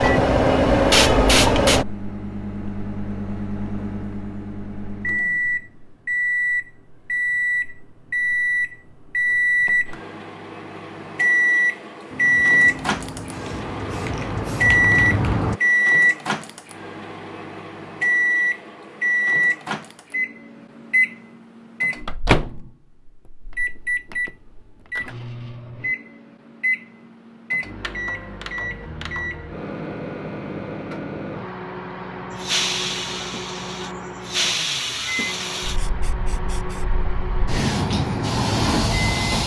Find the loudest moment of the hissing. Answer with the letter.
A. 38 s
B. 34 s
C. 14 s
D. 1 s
D.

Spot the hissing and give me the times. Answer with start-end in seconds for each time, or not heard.
0.0-1.9, 12.1-15.6, 32.3-39.4.